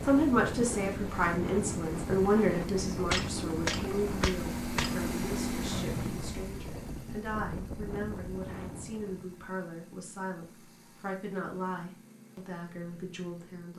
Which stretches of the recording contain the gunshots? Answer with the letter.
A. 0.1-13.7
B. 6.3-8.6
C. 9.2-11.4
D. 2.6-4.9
D.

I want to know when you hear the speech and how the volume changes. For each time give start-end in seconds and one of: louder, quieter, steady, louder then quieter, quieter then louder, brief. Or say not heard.
0.1-13.7 quieter.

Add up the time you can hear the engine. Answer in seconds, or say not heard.
14 s.